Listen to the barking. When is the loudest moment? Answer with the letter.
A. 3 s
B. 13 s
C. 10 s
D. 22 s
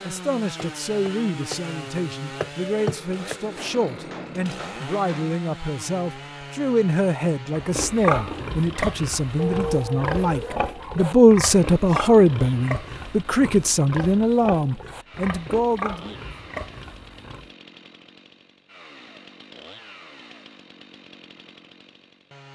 C.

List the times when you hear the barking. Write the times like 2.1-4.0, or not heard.
9.3-11.2.